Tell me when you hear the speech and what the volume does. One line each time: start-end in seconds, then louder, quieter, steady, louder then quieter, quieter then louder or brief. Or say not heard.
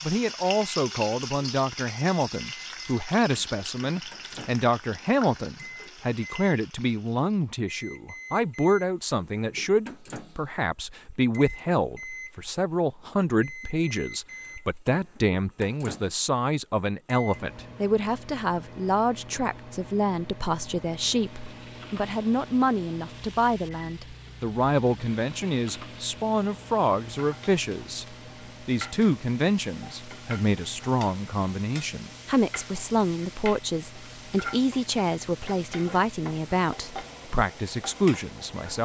0.0-38.7 steady.